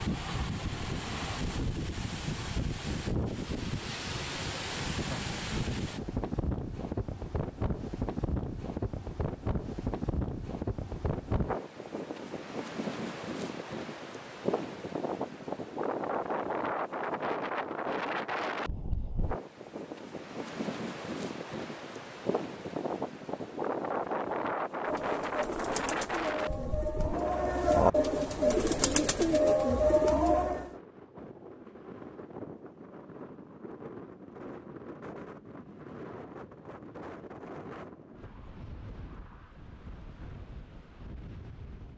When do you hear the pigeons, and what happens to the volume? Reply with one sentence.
You can hear the pigeons from 24.9 to 30.7 s, getting louder.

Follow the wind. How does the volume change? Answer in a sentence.
The loudness of the wind goes down.